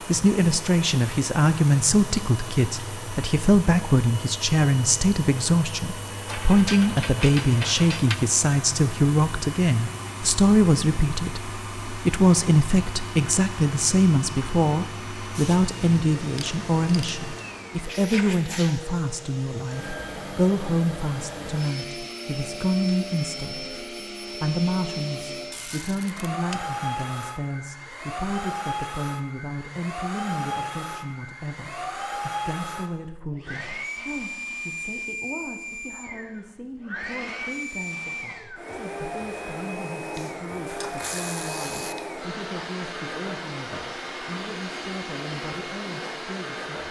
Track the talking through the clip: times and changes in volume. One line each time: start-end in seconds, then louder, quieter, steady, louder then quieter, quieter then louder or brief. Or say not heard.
0.1-46.8 quieter.